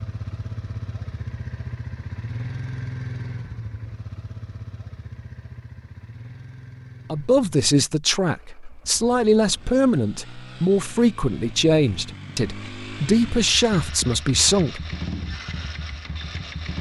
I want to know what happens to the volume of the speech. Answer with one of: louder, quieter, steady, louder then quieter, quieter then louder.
steady.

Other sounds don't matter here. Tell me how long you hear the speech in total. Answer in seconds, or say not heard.
8 s.